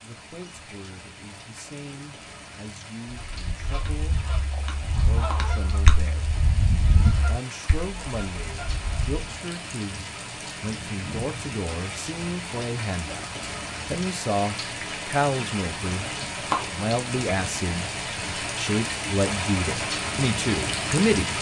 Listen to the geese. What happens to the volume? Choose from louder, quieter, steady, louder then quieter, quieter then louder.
louder then quieter.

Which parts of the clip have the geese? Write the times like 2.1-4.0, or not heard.
3.0-9.2.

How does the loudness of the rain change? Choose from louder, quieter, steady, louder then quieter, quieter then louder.
louder.